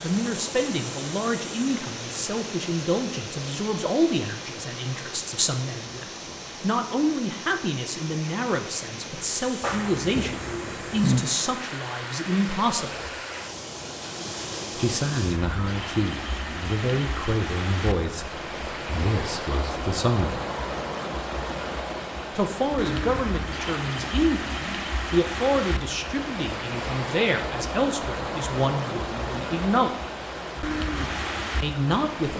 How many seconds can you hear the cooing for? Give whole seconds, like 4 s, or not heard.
2 s.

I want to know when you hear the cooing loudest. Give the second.
11 s.